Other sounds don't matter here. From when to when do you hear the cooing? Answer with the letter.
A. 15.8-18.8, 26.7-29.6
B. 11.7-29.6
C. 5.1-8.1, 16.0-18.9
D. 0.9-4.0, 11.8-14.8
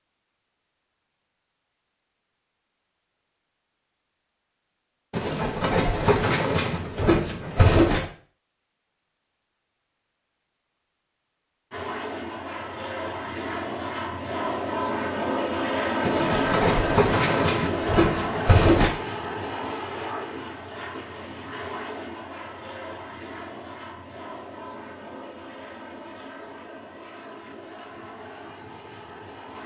C.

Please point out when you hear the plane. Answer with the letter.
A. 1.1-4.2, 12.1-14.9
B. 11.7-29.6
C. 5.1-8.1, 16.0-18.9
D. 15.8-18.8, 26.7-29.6
B.